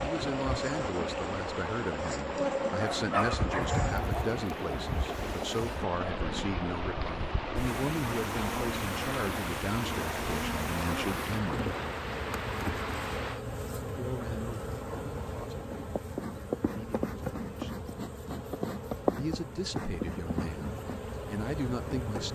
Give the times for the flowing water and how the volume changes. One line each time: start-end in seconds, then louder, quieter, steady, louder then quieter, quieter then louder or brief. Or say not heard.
0.0-13.4 steady.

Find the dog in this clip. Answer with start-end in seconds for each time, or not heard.
2.8-4.3.